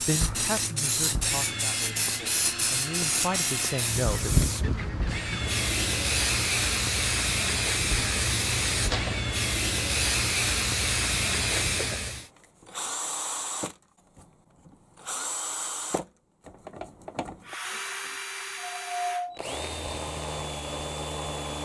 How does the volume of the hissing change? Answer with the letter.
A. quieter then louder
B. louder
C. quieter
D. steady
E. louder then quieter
D.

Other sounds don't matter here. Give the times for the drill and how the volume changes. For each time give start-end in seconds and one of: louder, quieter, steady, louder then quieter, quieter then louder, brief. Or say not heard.
0.0-21.5 steady.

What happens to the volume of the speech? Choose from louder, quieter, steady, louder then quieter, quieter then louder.
quieter then louder.